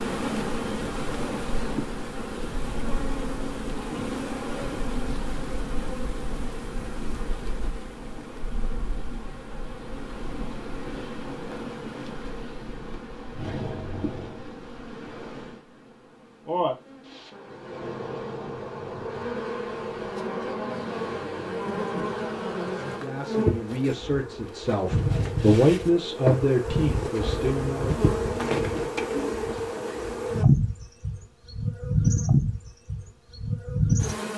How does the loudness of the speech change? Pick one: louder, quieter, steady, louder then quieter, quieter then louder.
louder then quieter.